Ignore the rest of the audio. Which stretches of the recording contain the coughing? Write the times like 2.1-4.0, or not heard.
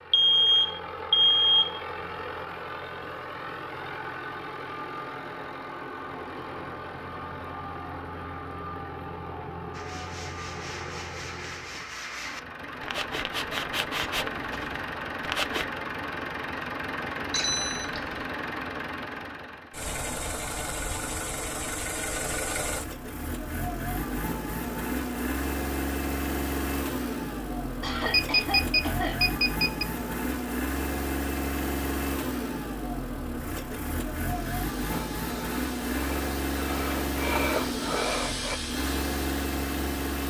27.8-29.2.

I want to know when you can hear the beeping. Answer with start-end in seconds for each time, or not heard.
0.1-1.8, 17.3-18.1, 28.1-29.9.